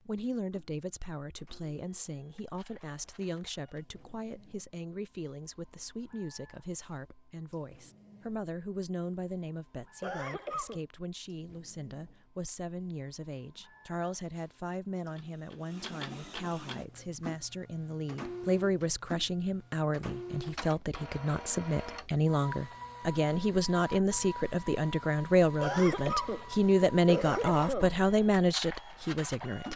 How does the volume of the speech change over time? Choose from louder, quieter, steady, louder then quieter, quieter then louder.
louder.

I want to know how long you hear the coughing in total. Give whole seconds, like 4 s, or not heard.
4 s.